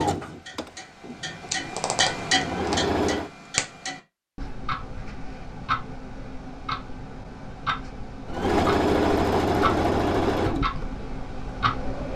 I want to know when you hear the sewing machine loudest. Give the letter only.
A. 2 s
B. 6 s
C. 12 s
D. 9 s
D.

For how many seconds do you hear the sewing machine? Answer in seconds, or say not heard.
7 s.